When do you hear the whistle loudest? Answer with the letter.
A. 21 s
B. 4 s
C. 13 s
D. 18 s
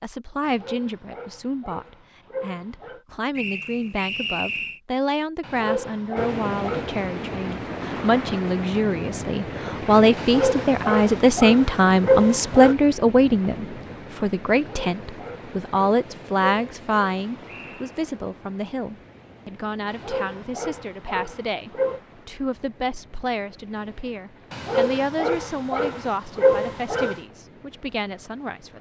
B.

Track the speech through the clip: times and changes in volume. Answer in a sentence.
The speech can be heard from 0.0 to 28.7 s, getting louder then quieter.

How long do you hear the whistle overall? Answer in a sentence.
The whistle can be heard for 2 seconds in total.